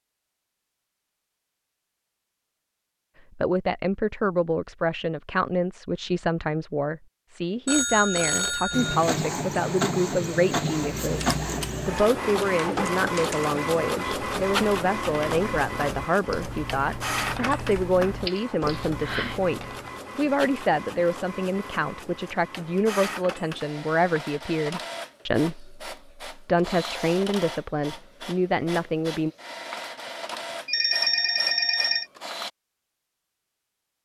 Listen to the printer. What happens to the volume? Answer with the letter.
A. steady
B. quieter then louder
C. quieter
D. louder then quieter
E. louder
C.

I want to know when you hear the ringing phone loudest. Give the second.
31 s.